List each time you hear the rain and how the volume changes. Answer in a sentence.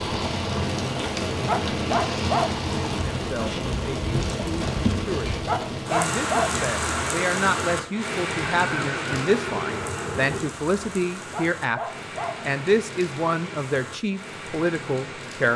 The rain can be heard from 0.0 to 15.5 s, getting quieter.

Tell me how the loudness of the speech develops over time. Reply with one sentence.
The volume of the speech goes up.